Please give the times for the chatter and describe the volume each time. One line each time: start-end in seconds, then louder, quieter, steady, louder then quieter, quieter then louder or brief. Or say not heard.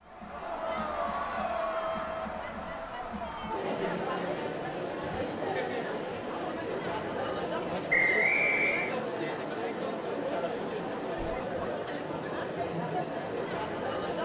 0.0-14.2 steady.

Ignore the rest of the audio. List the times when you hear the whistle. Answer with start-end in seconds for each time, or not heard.
7.9-8.9.